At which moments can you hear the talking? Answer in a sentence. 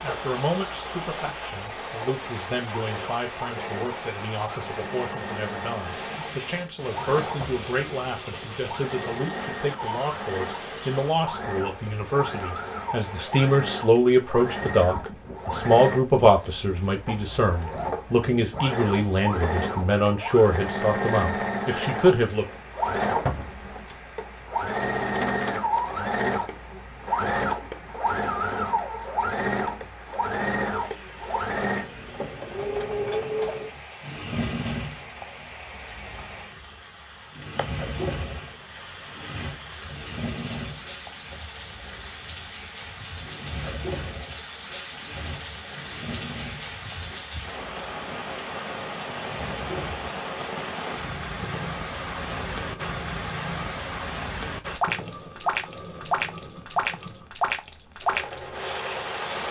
You can hear the talking from 0.0 to 22.4 s.